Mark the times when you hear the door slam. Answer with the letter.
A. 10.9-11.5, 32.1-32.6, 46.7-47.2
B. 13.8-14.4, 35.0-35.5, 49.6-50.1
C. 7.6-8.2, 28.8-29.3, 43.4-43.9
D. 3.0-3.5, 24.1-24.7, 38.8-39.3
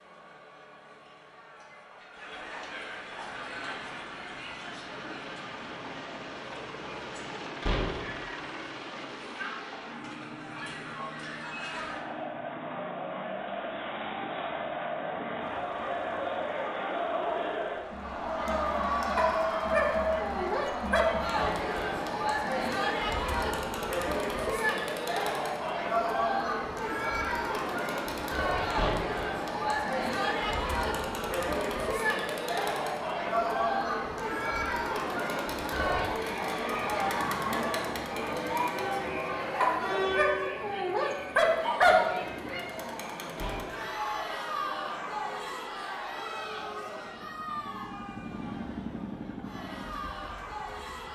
C.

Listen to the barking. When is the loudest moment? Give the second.
42 s.